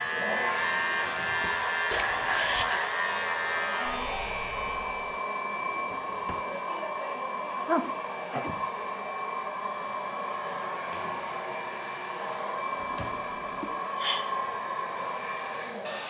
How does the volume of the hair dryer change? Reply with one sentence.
The loudness of the hair dryer stays about the same.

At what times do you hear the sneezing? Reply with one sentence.
You can hear the sneezing from 1.9 to 2.6 s, from 7.5 to 8.6 s and from 13.6 to 14.2 s.